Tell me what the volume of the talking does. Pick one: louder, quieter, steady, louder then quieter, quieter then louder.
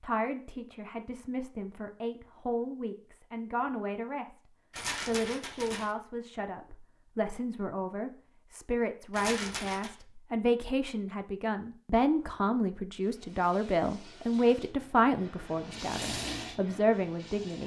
louder.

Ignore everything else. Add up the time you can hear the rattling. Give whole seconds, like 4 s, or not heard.
2 s.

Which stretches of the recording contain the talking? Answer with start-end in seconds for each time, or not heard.
0.0-17.6.